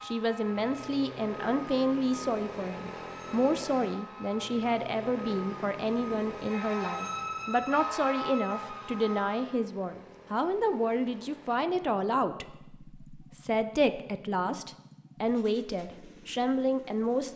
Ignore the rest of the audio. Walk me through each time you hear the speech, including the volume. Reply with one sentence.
You can hear the speech from 0.0 to 17.3 s, at a steady volume.